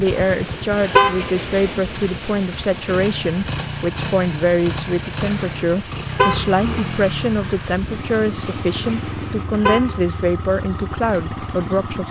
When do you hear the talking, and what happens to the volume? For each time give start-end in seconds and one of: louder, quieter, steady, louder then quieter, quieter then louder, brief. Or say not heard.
0.0-12.0 steady.